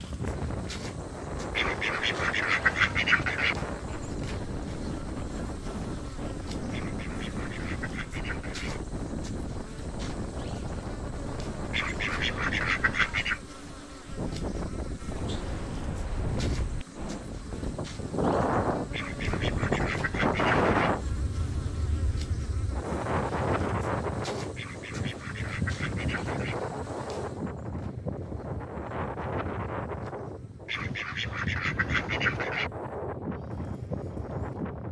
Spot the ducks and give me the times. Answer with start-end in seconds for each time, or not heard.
1.6-3.5, 6.7-8.8, 11.7-13.4, 18.9-20.9, 24.6-26.6, 30.6-32.7.